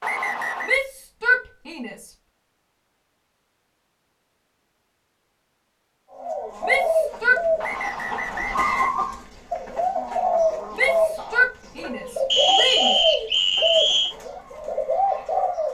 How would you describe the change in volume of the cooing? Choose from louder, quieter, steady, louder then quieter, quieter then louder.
steady.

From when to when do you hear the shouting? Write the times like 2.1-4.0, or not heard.
0.7-2.1, 6.6-7.5, 10.8-12.9.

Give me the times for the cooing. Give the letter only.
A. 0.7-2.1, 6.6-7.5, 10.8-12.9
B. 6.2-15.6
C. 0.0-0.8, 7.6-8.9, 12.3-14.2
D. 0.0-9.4
B.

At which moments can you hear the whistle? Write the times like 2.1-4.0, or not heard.
0.0-0.8, 7.6-8.9, 12.3-14.2.